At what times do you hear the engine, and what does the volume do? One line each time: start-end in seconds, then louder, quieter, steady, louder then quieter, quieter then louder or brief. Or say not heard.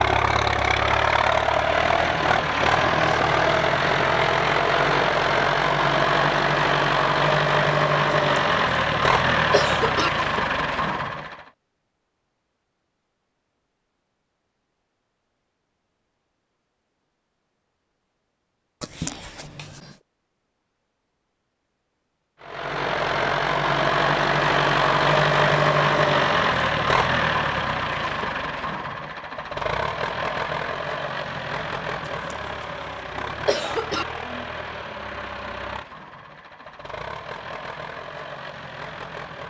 0.0-11.4 steady
22.4-39.4 quieter.